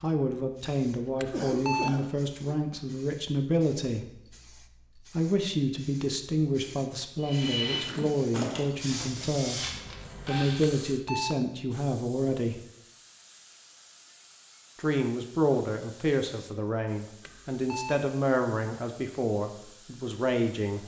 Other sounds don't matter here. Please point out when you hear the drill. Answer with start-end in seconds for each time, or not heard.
7.2-10.7.